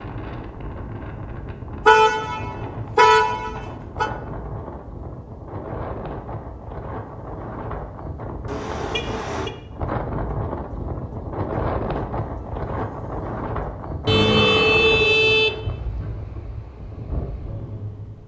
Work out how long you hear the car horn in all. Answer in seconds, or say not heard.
5 s.